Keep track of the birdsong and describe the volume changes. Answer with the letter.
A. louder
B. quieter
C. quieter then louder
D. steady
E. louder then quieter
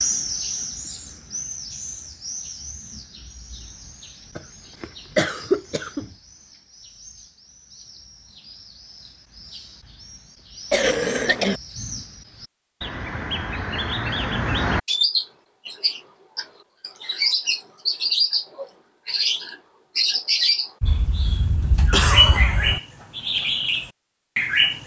C.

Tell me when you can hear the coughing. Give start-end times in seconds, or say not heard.
4.3-6.0, 10.7-11.6, 20.8-22.8.